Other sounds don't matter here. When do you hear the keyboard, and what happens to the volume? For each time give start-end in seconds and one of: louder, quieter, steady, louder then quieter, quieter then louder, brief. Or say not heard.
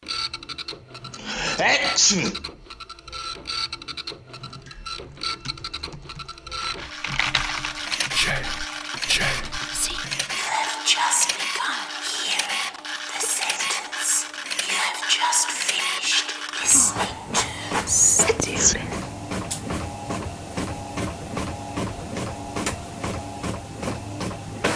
4.5-10.8 louder then quieter.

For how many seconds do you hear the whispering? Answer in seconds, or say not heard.
11 s.